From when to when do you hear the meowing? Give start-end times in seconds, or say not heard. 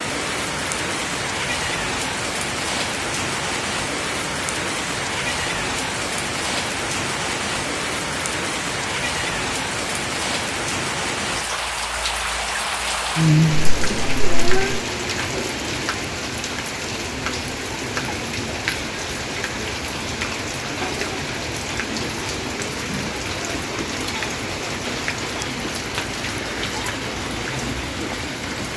13.7-14.8.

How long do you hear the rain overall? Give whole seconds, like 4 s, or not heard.
29 s.